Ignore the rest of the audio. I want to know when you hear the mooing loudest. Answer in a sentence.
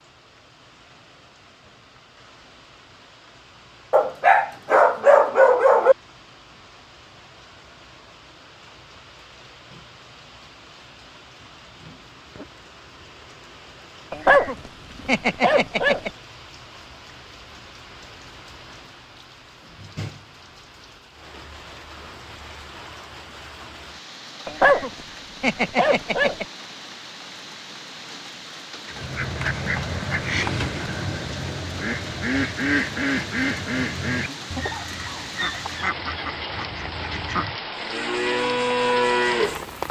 The loudest moment of the mooing is at 39 seconds.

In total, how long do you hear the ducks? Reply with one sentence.
You can hear the ducks for 9 seconds altogether.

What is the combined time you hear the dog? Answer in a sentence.
You can hear the dog for 8 seconds altogether.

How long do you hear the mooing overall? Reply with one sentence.
You can hear the mooing for 2 seconds altogether.